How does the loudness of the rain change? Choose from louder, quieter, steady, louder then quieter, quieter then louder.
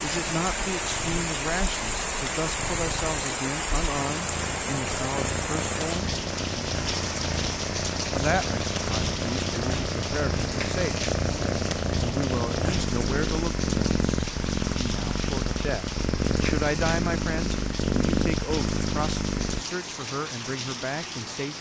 quieter.